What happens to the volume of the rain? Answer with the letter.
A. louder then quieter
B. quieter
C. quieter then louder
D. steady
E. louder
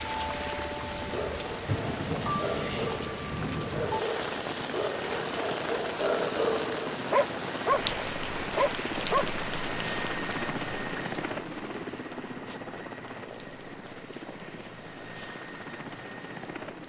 B.